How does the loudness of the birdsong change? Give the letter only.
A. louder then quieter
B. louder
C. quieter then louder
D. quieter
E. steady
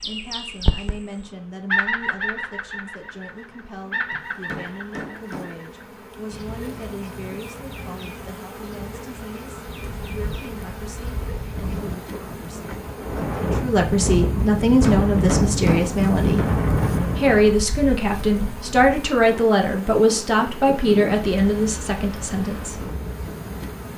D.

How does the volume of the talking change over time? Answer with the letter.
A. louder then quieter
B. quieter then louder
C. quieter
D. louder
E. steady
D.